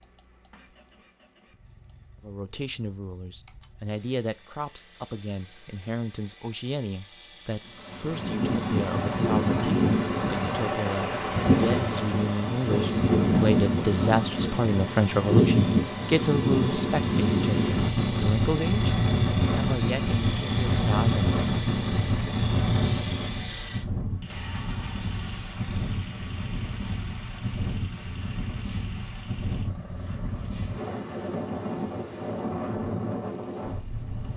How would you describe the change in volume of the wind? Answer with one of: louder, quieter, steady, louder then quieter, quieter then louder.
quieter.